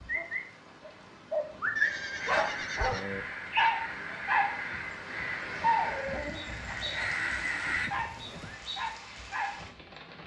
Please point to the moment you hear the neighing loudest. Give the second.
2 s.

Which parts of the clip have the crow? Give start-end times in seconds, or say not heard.
2.2-7.9.